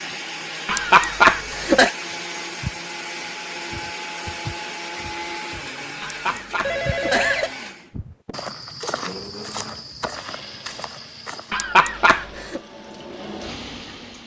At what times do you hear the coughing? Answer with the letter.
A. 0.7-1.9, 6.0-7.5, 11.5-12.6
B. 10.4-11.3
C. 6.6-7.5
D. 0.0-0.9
A.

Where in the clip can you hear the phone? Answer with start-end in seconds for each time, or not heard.
6.6-7.5.